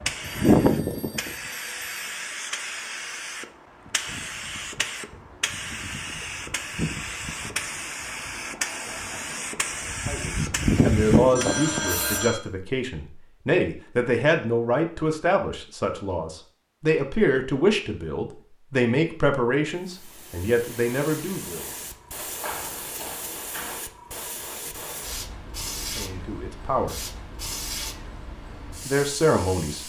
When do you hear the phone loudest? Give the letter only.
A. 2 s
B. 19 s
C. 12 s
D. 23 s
C.